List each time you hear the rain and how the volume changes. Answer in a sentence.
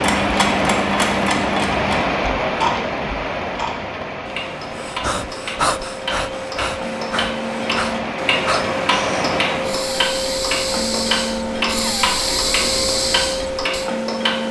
The rain can be heard from 0.0 to 9.9 s, getting quieter then louder.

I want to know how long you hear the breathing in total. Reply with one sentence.
The breathing can be heard for 9 seconds in total.